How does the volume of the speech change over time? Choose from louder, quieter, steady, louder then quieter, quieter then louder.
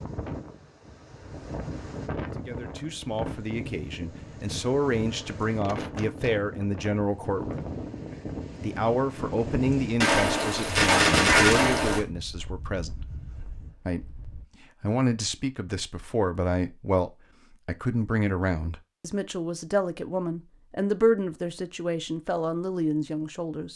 steady.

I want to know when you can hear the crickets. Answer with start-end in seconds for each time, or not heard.
not heard.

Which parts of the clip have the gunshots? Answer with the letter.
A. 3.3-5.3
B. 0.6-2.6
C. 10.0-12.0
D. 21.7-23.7
C.